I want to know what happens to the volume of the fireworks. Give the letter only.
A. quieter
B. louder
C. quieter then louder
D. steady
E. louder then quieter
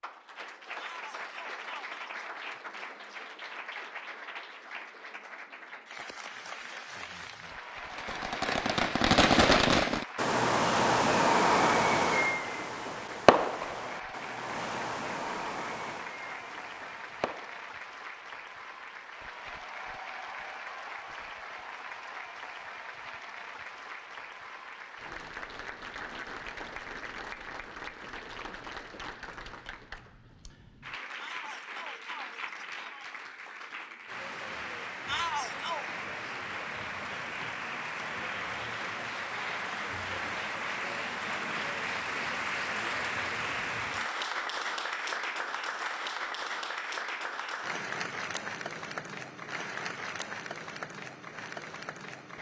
A.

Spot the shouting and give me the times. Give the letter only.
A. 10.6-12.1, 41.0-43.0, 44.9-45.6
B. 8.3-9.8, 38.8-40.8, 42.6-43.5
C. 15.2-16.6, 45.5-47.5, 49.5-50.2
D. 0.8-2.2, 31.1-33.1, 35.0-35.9
D.